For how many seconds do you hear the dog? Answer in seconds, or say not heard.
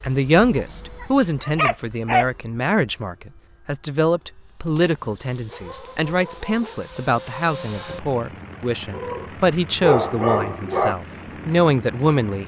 6 s.